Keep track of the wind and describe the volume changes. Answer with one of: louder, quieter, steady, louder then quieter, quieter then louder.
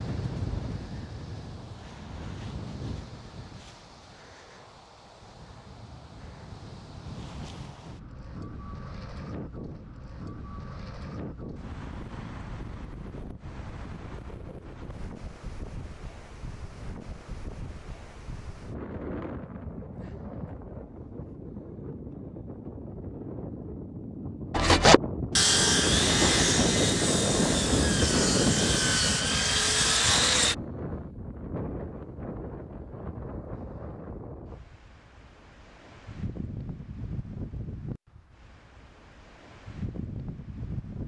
louder then quieter.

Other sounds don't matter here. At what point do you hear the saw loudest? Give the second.
25 s.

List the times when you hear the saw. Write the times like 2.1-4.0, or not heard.
24.5-30.6.